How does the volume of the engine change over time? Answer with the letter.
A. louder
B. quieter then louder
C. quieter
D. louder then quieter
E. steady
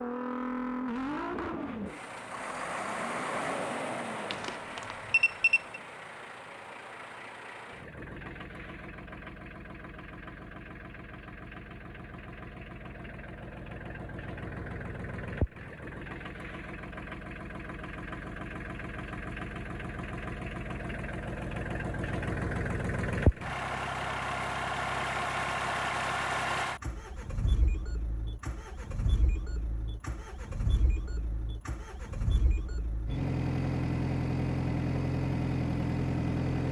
B.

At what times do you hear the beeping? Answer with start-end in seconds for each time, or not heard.
4.3-5.8.